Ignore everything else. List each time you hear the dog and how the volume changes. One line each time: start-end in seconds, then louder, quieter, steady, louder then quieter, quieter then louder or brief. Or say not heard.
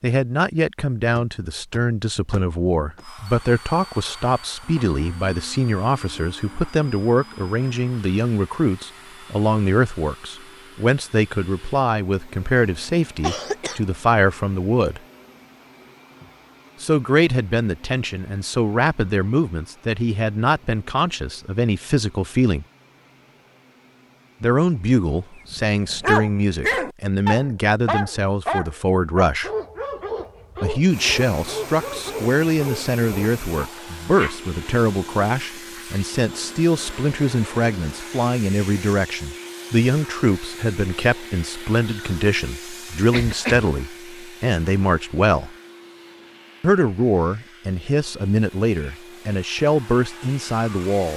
25.5-34.4 quieter.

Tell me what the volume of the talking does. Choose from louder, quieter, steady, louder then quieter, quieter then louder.
steady.